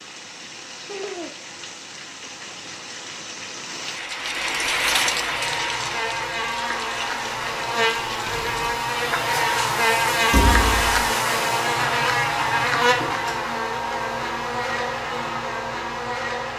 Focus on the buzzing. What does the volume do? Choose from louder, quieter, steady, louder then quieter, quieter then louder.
louder then quieter.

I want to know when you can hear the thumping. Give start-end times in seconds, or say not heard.
10.3-11.1.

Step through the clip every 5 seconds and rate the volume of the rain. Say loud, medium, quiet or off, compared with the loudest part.
loud, loud, off, off.